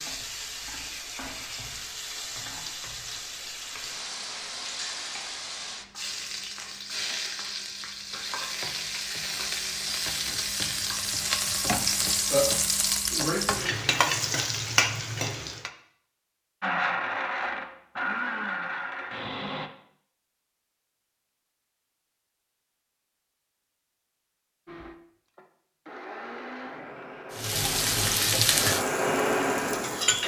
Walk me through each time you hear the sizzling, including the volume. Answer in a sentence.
The sizzling can be heard from 0.0 to 15.7 s, getting louder; and briefly from 27.3 to 30.2 s.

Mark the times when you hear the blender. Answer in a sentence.
The blender can be heard from 16.6 to 19.7 s and from 24.6 to 30.2 s.